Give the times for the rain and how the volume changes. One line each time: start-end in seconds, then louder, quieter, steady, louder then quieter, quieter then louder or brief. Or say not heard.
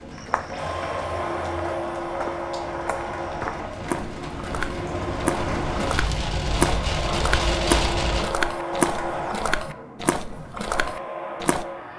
0.0-8.3 louder.